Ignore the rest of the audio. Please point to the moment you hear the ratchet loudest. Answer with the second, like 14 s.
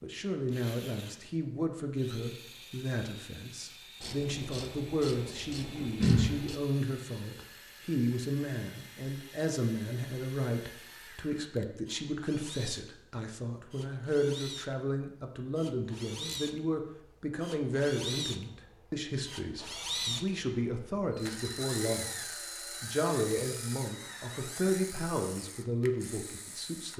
6 s.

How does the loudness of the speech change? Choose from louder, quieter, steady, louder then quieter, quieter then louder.
steady.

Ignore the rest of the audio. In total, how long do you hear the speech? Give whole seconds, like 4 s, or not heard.
26 s.